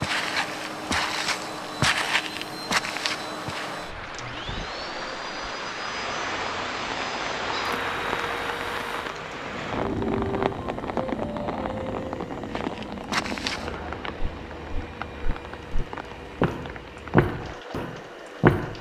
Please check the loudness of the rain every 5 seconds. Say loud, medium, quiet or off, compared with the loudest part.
medium, loud, loud, medium.